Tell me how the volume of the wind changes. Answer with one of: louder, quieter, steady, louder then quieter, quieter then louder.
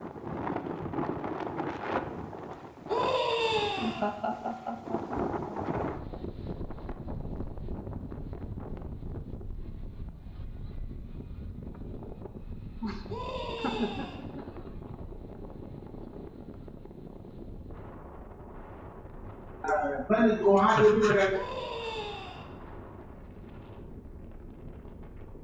quieter.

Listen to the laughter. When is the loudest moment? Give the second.
21 s.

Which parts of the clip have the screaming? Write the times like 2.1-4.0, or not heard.
2.9-4.0, 13.1-14.2, 21.3-22.4.